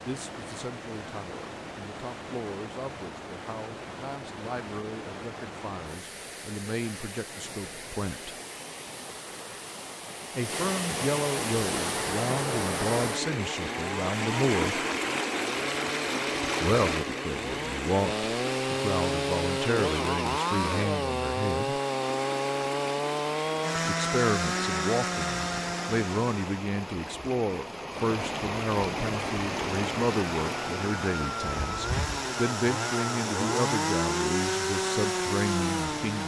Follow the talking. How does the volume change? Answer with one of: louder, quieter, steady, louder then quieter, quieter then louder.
louder.